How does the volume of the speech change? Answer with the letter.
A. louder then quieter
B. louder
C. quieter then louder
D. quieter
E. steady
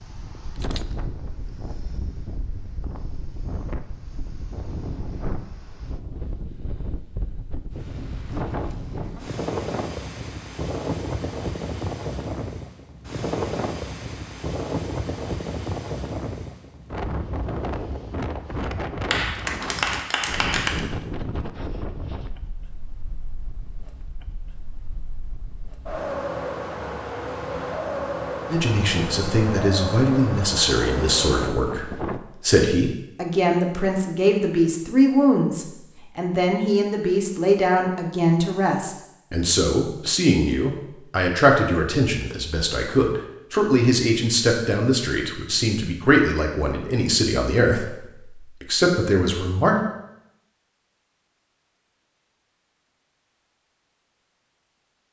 E.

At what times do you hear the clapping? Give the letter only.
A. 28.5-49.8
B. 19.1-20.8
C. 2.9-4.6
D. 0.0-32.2
B.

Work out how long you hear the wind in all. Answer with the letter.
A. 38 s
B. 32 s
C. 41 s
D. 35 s
B.